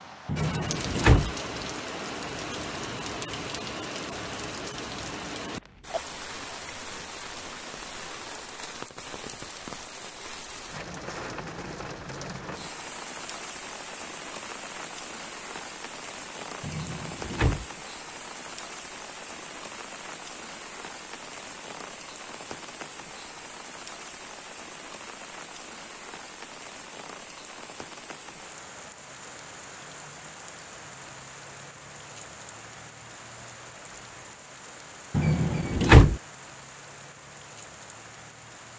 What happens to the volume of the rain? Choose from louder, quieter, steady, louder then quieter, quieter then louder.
quieter.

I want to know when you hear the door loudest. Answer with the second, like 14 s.
36 s.